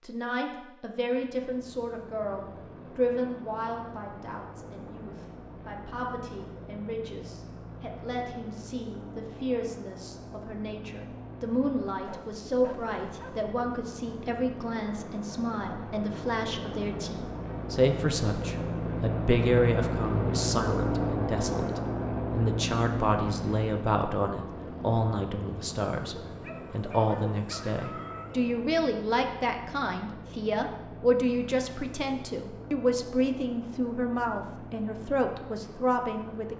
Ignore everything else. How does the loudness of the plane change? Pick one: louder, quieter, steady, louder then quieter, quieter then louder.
louder then quieter.